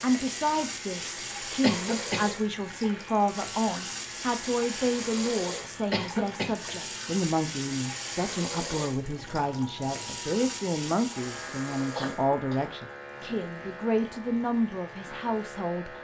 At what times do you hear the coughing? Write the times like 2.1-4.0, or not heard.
1.6-2.3, 5.9-6.5, 11.9-12.6.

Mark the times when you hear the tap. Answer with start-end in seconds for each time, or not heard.
0.0-15.8.